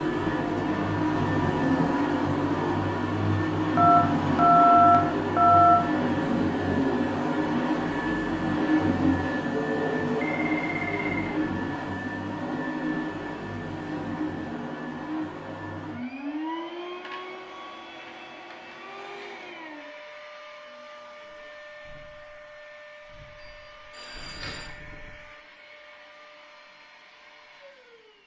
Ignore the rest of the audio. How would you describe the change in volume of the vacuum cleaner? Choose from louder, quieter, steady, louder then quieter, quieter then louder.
quieter.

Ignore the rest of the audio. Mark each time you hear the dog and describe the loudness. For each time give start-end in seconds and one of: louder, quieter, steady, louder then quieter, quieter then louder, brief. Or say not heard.
not heard.